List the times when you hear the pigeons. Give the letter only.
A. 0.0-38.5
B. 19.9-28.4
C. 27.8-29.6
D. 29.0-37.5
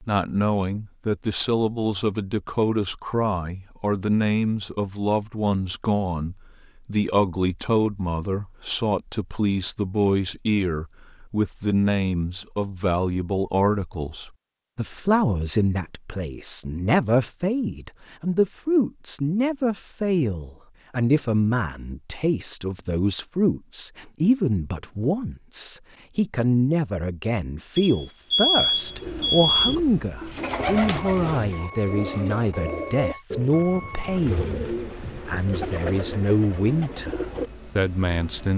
D.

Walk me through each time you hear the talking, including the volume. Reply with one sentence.
You can hear the talking from 0.0 to 38.5 s, at a steady volume.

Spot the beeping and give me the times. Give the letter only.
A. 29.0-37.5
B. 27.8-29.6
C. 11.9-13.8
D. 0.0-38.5
B.